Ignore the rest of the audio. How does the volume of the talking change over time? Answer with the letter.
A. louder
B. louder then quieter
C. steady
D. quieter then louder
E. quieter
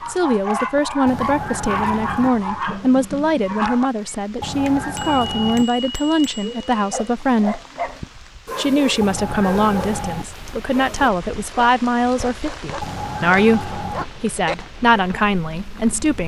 C.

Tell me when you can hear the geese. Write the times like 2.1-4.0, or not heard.
1.1-2.3, 4.4-5.7, 9.0-10.2, 12.8-14.1.